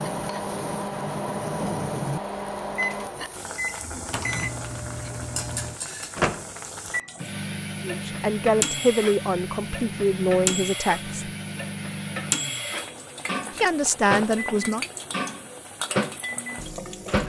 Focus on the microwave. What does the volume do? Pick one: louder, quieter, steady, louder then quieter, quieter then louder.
steady.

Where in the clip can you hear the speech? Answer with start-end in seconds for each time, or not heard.
7.8-11.3, 13.6-14.8.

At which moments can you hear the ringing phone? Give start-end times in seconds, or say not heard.
not heard.